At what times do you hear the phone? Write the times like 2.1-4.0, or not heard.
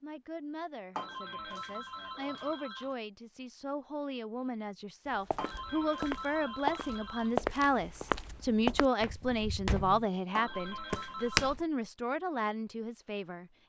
0.9-3.0, 5.3-7.3, 10.3-11.6.